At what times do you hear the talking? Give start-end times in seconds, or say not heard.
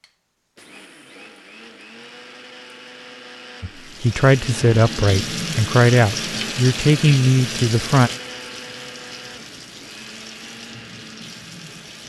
3.6-8.1.